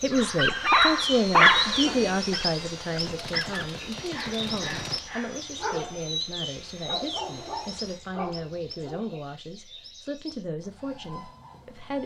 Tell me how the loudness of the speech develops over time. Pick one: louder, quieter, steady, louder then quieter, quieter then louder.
quieter.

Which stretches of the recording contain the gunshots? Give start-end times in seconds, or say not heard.
3.0-5.0.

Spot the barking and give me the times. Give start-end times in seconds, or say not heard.
0.1-9.2.